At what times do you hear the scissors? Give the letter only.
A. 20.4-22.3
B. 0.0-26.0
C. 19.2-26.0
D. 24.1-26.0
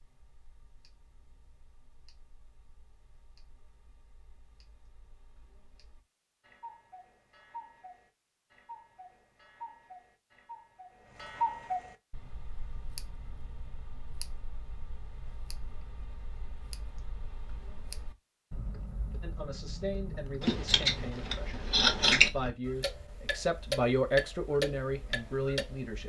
A.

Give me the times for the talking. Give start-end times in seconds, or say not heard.
19.2-26.0.